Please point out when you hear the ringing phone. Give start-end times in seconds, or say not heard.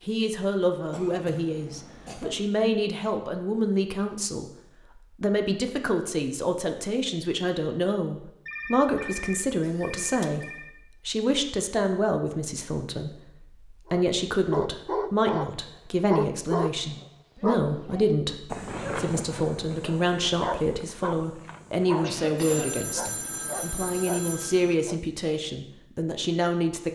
8.4-10.8, 22.4-24.8.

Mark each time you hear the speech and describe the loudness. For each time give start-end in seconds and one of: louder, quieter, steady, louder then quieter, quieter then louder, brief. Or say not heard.
0.1-26.9 steady.